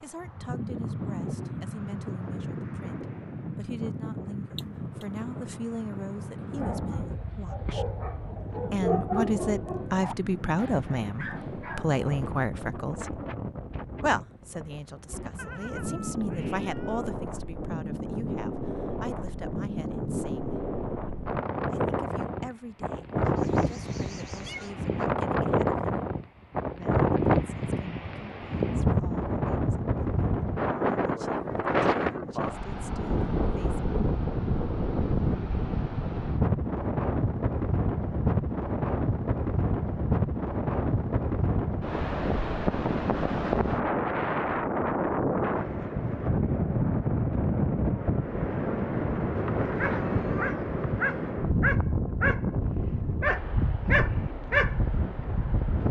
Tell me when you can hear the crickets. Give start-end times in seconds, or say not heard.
not heard.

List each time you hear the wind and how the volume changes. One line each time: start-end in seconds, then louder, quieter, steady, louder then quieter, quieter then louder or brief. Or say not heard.
0.0-55.8 louder.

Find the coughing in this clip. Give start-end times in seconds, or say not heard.
4.5-5.0.